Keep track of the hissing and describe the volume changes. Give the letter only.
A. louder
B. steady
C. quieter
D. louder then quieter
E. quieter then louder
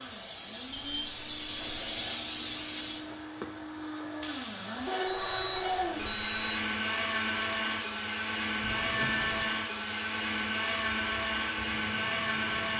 C.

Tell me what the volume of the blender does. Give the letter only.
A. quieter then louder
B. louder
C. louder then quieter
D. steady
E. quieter
B.